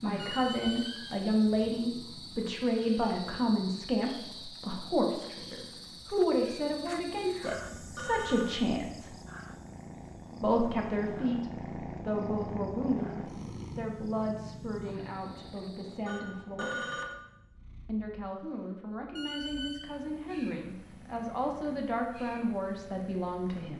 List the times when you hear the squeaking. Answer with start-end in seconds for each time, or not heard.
0.1-1.1, 19.1-19.9.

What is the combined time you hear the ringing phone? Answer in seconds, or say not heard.
2 s.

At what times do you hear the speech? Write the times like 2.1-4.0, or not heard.
0.0-9.2, 10.4-16.9, 17.9-23.7.